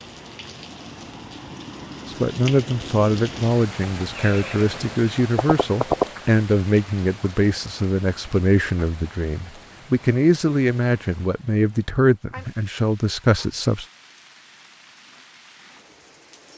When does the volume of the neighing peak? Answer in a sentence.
The volume of the neighing peaks at 6 seconds.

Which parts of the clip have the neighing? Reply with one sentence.
You can hear the neighing from 4.2 to 6.2 s.